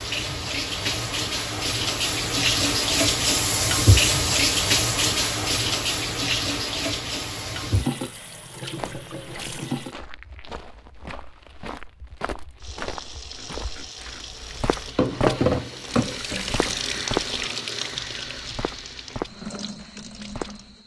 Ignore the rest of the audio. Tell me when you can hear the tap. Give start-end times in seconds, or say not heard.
0.0-9.9, 12.6-20.8.